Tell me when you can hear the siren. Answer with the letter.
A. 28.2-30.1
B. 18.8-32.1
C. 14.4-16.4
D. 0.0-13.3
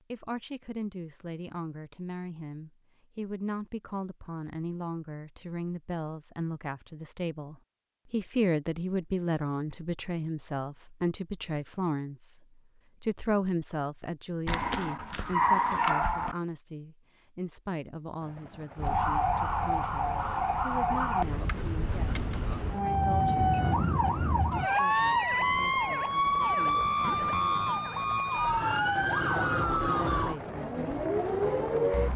B.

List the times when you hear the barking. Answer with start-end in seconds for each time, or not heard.
14.4-16.4.